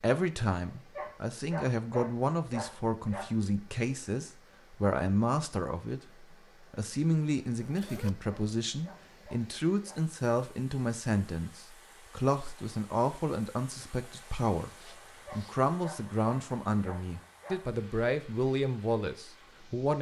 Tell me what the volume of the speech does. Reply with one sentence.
The loudness of the speech stays about the same.